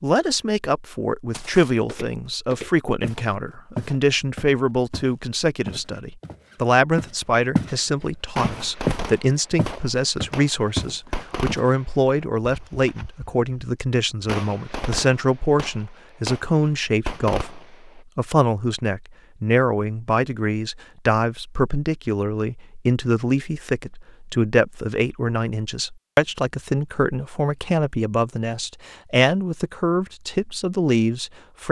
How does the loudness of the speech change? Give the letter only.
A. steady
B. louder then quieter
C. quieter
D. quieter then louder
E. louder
A.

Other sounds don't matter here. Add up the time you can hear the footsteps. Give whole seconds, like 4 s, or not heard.
10 s.